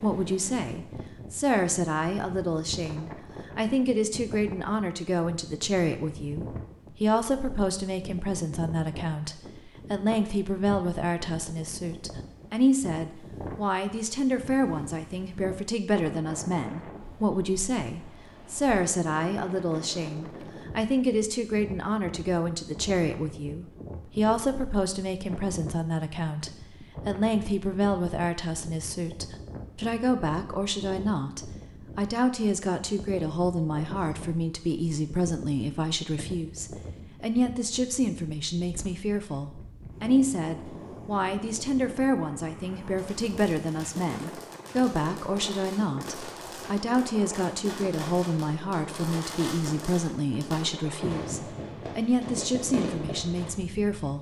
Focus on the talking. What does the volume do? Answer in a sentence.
The loudness of the talking stays about the same.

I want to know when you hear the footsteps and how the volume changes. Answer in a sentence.
You can't hear the footsteps here.